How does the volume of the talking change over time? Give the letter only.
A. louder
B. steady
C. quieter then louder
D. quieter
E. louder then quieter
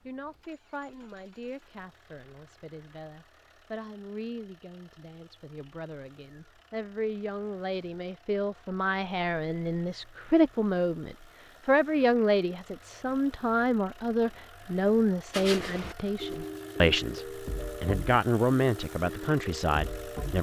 A.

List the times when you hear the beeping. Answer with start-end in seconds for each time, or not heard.
not heard.